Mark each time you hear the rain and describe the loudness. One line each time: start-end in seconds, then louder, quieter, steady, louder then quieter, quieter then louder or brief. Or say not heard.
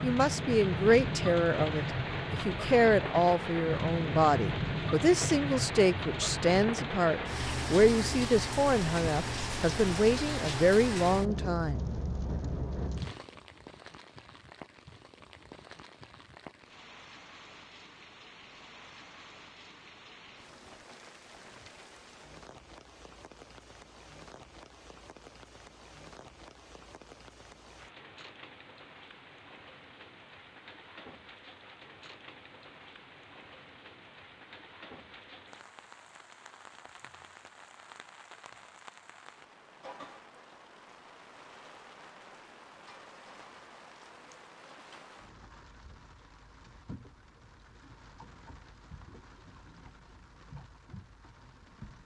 0.0-52.0 quieter.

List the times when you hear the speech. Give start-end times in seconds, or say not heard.
0.0-11.9.